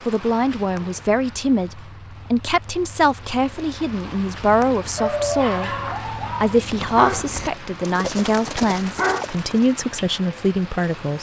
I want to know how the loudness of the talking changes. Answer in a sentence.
The volume of the talking stays about the same.